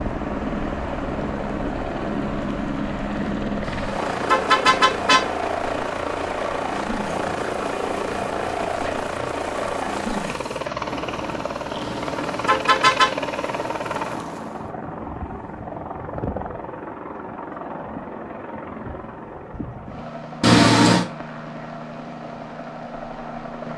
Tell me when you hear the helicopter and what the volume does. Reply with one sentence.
The helicopter can be heard from 0.0 to 23.7 s, getting quieter.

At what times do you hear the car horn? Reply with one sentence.
You can hear the car horn from 3.6 to 5.2 s, from 11.8 to 13.1 s and from 20.4 to 21.1 s.